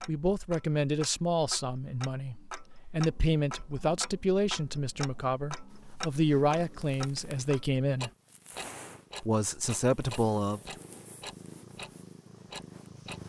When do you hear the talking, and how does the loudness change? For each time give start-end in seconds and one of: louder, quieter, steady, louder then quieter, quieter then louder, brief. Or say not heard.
0.1-8.1 steady
9.2-10.8 brief.